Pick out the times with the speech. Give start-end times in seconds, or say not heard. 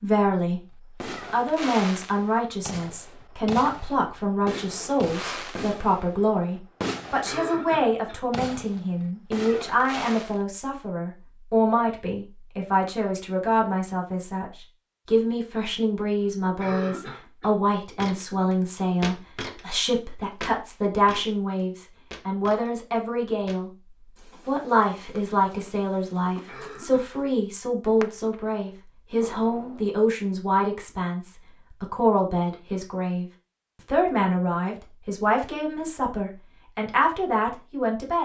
0.0-0.6, 1.3-14.4, 15.1-23.7, 24.4-33.2, 33.9-38.2.